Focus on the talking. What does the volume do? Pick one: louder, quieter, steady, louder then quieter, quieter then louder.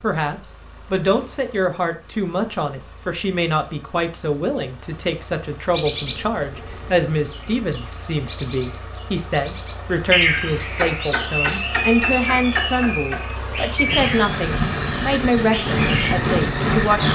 steady.